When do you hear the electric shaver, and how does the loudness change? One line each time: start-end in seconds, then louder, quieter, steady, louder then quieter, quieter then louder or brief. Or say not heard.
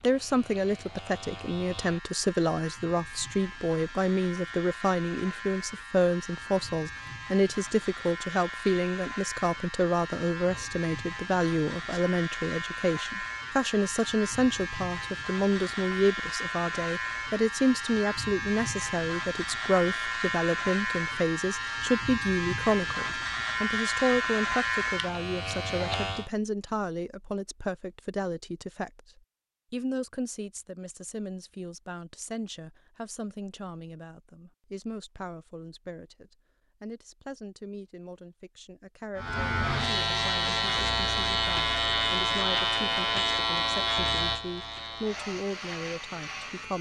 0.0-26.3 louder
39.1-46.7 quieter.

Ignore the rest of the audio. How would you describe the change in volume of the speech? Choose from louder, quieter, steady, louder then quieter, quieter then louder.
quieter.